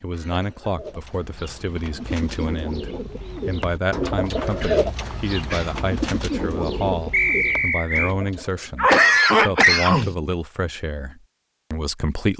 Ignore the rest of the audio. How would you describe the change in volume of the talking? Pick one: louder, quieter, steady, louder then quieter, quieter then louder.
steady.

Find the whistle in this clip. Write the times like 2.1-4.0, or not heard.
7.1-8.2.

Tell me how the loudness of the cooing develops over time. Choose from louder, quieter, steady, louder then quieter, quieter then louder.
louder then quieter.